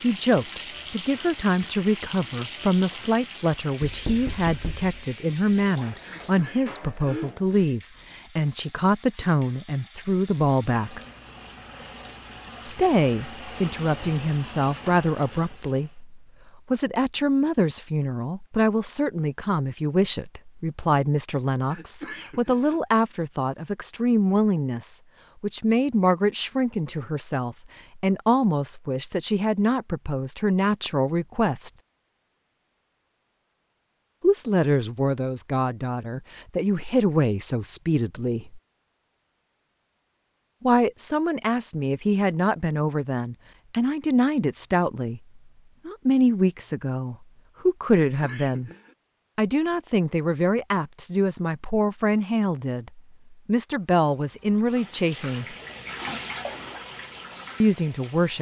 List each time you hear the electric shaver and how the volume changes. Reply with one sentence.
You can't hear the electric shaver here.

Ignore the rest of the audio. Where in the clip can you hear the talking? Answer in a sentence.
The talking can be heard from 0.0 to 11.0 s, from 12.6 to 31.7 s, from 34.2 to 38.6 s, from 40.6 to 48.7 s, from 49.4 to 55.5 s and from 57.6 to 58.3 s.